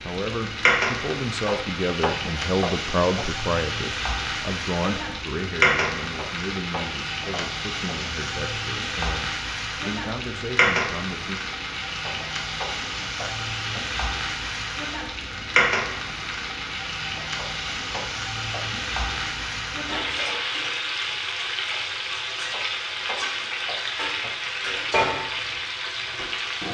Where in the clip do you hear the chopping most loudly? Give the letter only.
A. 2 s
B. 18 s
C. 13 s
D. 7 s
A.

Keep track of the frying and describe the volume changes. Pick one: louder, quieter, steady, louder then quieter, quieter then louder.
steady.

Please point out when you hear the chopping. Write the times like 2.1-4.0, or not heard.
1.4-3.2, 6.2-8.0, 12.1-13.8, 17.4-18.7, 22.5-24.3.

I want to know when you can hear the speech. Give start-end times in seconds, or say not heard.
0.0-11.3.